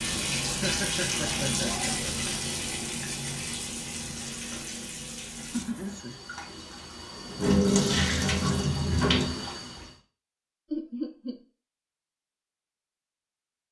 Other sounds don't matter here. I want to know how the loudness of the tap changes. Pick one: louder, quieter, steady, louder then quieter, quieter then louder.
quieter then louder.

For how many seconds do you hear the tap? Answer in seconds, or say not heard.
10 s.